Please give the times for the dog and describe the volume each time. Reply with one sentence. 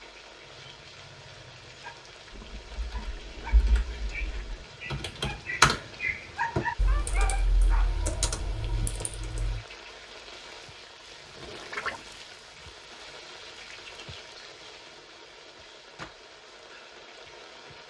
You can hear the dog from 0.4 to 7.9 s, getting louder.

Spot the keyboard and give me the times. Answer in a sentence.
You can hear the keyboard from 2.5 to 9.6 s.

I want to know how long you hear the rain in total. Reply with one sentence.
You can hear the rain for 18 seconds altogether.